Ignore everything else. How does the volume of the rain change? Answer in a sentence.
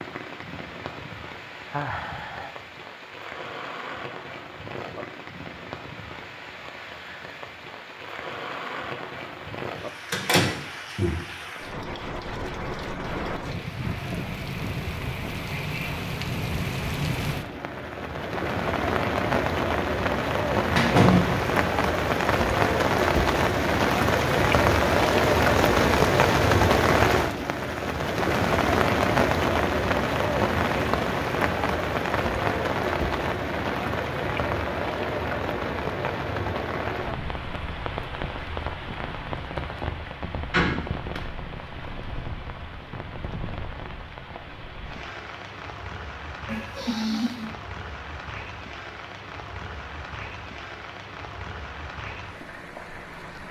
The loudness of the rain goes up, then down.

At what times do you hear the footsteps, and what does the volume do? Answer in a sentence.
You can't hear the footsteps here.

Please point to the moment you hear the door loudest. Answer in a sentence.
The volume of the door peaks at 21 seconds.